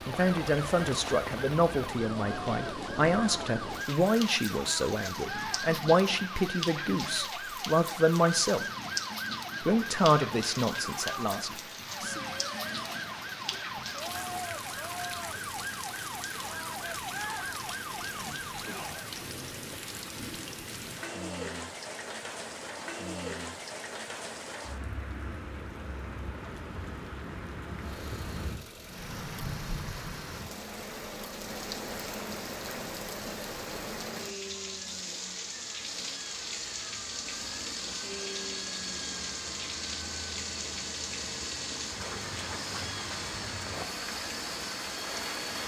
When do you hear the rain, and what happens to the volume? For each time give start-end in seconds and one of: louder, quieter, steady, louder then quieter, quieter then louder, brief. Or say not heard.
0.0-45.6 steady.